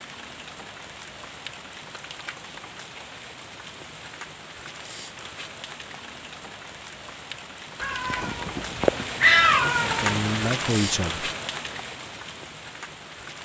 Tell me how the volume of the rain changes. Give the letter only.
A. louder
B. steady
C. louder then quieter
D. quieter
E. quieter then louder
A.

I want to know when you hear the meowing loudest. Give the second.
9 s.